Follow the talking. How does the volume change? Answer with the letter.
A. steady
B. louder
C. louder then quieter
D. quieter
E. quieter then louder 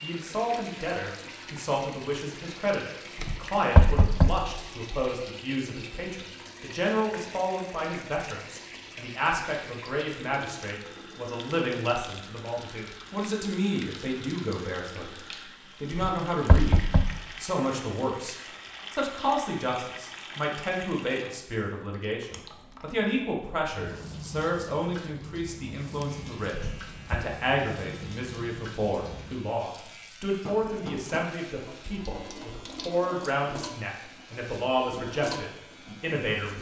A.